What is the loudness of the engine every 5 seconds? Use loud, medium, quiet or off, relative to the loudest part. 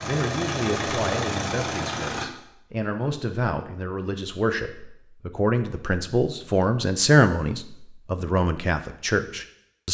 loud, off.